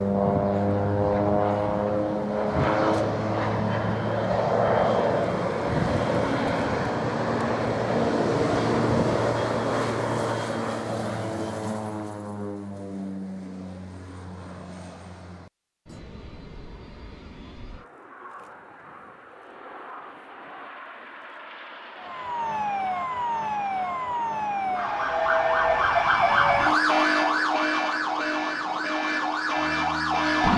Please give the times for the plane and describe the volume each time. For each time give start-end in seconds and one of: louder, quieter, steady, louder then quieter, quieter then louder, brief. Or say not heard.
0.0-30.5 quieter.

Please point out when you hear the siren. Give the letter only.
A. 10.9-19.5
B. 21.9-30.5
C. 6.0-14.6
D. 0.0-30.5
B.